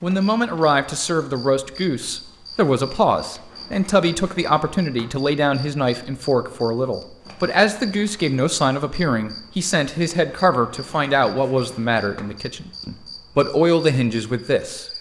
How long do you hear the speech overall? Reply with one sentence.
You can hear the speech for 15 seconds altogether.